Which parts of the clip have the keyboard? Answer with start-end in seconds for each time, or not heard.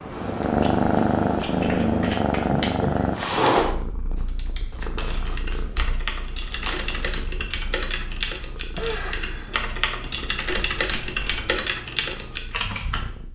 4.2-13.1.